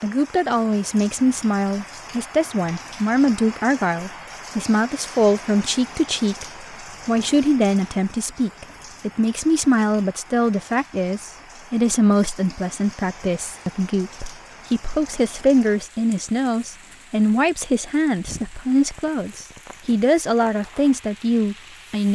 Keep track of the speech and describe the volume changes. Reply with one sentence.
The loudness of the speech stays about the same.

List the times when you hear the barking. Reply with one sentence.
The barking can't be heard in this clip.